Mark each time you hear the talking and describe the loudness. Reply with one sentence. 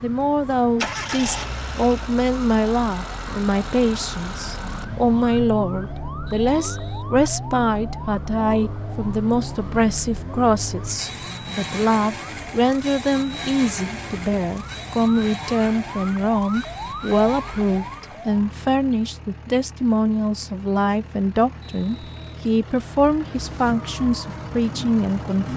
The talking can be heard from 0.0 to 25.5 s, at a steady volume.